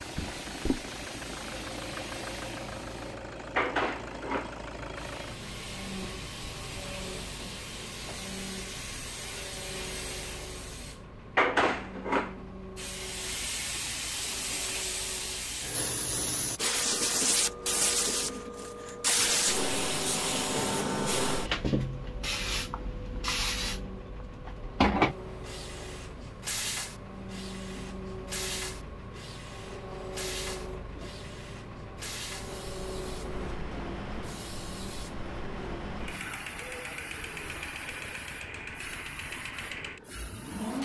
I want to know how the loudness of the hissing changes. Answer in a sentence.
The volume of the hissing goes up, then down.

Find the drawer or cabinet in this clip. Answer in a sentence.
You can hear the drawer or cabinet from 0.1 to 0.8 s.